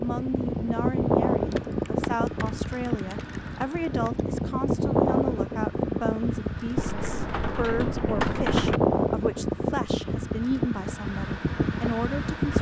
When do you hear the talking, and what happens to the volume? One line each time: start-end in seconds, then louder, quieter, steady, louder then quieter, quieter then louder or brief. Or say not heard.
0.0-12.5 steady.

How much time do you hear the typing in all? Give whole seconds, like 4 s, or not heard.
5 s.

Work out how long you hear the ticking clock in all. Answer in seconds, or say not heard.
not heard.